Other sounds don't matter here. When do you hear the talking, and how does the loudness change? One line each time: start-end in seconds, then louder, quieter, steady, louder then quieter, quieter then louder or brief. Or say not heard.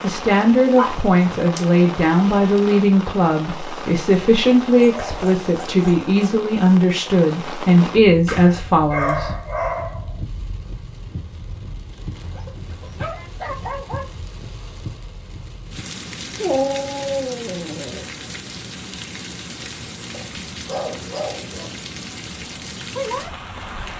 0.0-9.4 steady.